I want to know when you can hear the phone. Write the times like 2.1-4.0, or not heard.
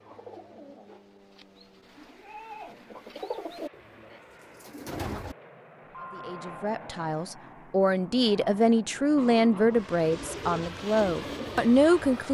5.8-6.7.